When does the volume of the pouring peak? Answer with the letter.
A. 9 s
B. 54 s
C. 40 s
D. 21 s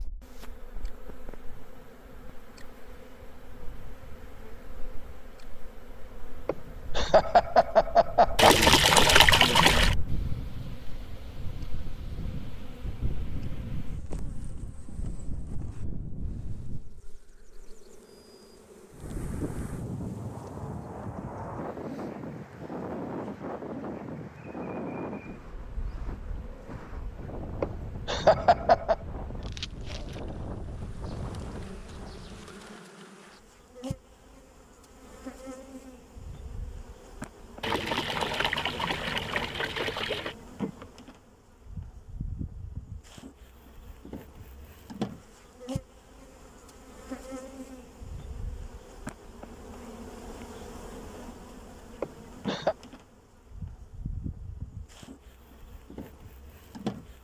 A.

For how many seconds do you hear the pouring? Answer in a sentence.
The pouring can be heard for 4 seconds in total.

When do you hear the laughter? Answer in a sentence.
The laughter can be heard from 6.5 to 8.7 s, from 27.6 to 28.9 s and from 52.0 to 52.8 s.